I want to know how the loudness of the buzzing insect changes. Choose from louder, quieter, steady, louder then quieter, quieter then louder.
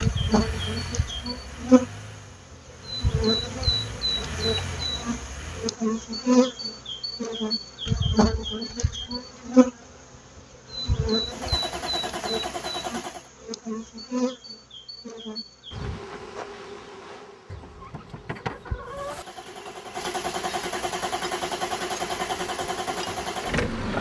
quieter.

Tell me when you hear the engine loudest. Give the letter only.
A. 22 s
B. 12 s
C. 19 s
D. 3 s
A.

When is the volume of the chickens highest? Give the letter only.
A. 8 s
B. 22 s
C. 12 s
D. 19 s
D.